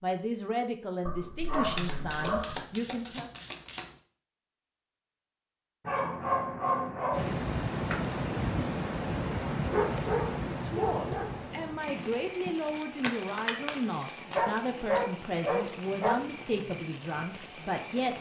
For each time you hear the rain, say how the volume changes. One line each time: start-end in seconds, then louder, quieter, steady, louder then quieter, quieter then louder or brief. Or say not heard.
7.1-18.1 quieter.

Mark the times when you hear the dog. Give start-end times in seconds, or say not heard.
1.1-2.6, 5.8-7.3, 9.7-11.3, 14.3-16.2.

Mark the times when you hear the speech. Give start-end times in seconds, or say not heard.
0.0-3.3, 10.4-18.1.